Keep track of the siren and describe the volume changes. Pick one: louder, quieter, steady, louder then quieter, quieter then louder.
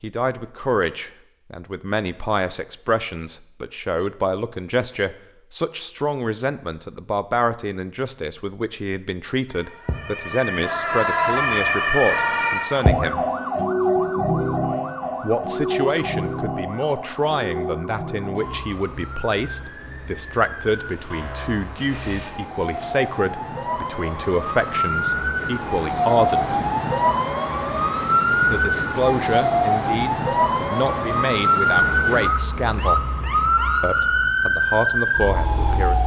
quieter then louder.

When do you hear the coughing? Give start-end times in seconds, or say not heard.
not heard.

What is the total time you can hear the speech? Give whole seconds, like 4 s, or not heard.
31 s.